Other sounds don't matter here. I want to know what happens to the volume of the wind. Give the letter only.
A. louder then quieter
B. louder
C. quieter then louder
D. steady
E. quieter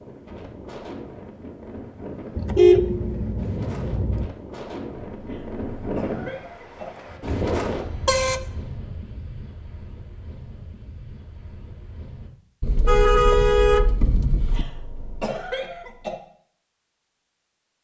A.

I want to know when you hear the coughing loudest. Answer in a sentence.
The loudest moment of the coughing is at 15 seconds.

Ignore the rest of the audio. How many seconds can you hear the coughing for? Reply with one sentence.
The coughing can be heard for 4 seconds in total.